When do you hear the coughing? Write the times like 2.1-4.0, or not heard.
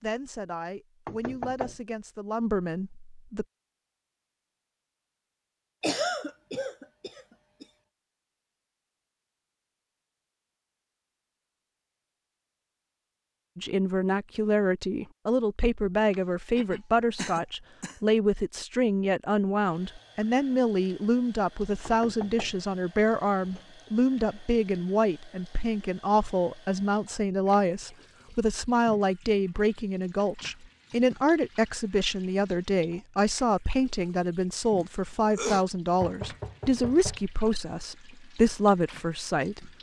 5.8-7.7, 16.1-18.0, 34.8-35.6.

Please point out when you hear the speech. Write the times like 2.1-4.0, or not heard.
0.0-3.5, 13.6-39.7.